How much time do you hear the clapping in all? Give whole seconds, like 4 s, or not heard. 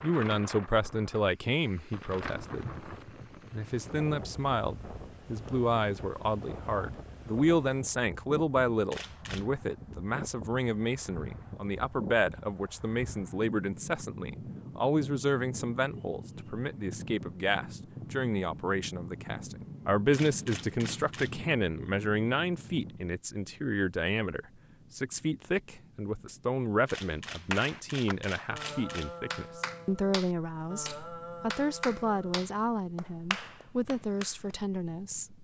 7 s.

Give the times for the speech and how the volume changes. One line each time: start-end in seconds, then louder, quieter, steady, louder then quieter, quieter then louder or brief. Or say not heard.
0.0-2.9 brief
3.5-35.3 steady.